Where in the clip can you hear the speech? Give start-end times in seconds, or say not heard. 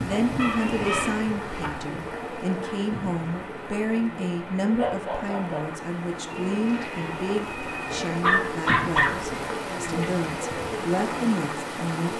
0.0-12.1.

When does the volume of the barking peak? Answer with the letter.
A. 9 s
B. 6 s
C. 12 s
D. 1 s
A.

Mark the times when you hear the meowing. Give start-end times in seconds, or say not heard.
0.6-1.2, 6.3-8.2.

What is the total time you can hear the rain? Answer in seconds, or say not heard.
12 s.